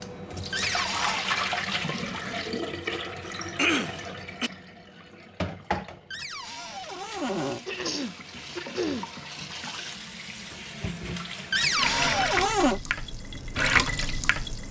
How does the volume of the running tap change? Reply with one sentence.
The loudness of the running tap goes down, then up.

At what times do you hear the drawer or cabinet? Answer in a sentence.
The drawer or cabinet can be heard from 0.5 to 1.2 s, from 6.1 to 7.6 s and from 11.5 to 12.8 s.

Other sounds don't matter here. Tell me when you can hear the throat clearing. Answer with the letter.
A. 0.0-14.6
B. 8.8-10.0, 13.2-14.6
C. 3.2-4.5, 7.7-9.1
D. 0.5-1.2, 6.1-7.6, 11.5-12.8
C.